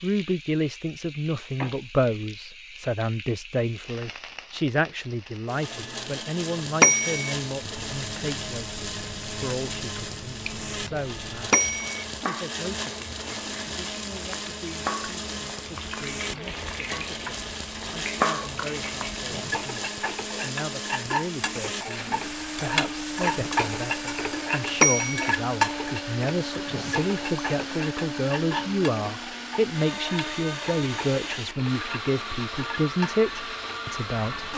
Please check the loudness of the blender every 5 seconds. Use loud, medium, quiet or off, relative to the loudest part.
off, loud, loud, loud, loud, loud, loud.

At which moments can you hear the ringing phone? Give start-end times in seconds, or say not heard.
6.8-7.3, 11.5-12.0, 24.8-25.4.